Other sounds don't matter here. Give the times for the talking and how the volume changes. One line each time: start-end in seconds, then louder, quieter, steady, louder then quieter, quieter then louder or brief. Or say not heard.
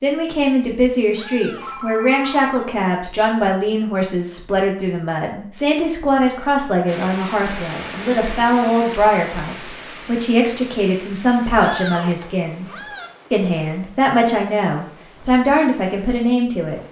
0.0-16.8 steady.